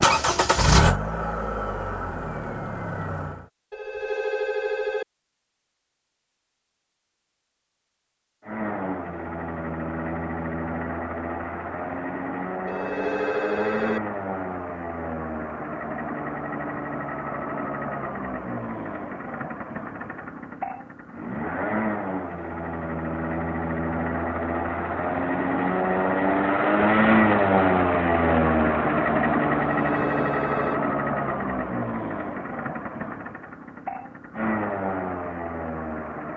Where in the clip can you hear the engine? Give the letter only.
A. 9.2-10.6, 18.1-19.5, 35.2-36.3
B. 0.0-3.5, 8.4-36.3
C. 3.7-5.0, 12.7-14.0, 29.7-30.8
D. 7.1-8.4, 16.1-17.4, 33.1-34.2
B.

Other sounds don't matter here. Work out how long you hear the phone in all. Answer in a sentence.
You can hear the phone for 4 seconds altogether.